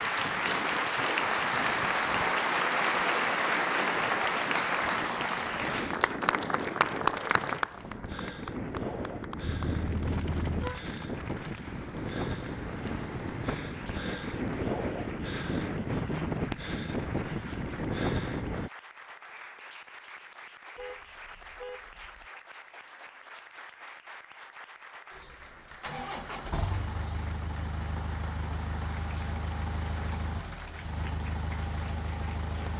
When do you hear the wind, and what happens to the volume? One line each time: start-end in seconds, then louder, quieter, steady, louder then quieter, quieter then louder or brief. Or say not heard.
0.0-18.7 louder.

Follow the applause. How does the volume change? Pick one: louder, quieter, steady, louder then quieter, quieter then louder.
quieter.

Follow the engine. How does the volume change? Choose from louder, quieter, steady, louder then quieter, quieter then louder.
steady.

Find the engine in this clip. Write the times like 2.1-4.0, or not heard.
25.8-32.7.